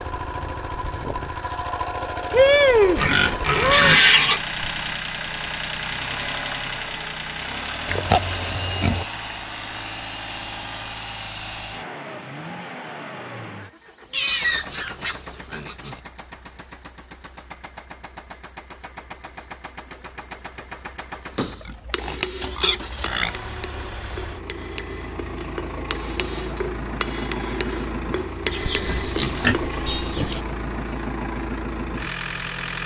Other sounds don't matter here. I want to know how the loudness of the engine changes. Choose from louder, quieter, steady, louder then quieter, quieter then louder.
quieter then louder.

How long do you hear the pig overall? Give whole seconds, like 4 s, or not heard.
9 s.